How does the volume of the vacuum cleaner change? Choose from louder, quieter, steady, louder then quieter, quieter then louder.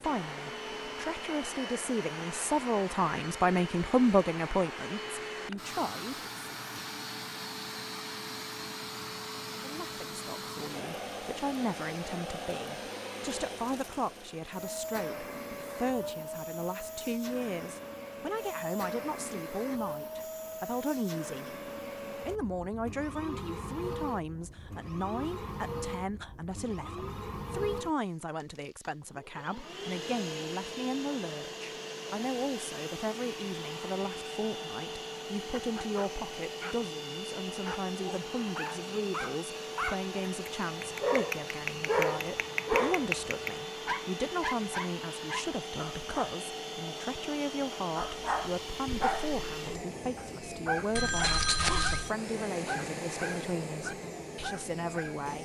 steady.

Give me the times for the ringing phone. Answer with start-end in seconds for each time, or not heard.
51.0-52.1.